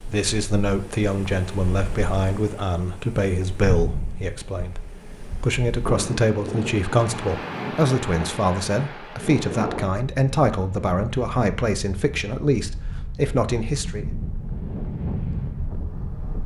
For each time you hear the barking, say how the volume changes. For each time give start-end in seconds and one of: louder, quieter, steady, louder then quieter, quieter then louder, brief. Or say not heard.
not heard.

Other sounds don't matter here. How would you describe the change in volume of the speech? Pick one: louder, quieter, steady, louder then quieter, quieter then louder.
steady.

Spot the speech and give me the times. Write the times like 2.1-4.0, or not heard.
0.0-14.1.